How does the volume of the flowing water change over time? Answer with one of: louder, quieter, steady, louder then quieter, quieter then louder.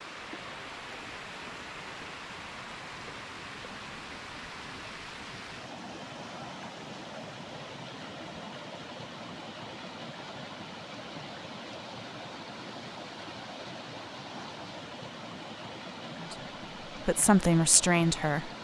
steady.